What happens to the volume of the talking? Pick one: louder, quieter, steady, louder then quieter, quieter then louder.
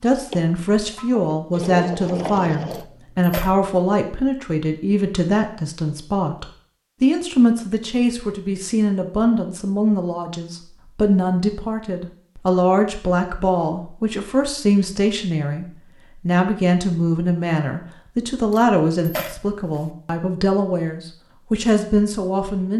steady.